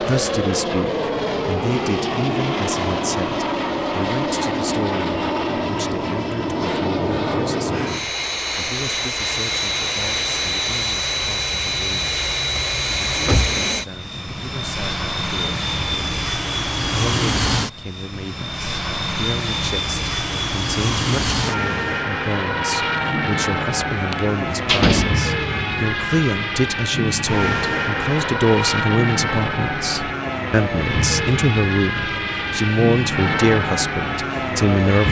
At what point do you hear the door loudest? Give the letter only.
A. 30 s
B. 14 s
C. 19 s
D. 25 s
D.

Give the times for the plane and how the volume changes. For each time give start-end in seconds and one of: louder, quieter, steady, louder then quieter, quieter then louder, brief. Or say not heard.
0.0-35.0 steady.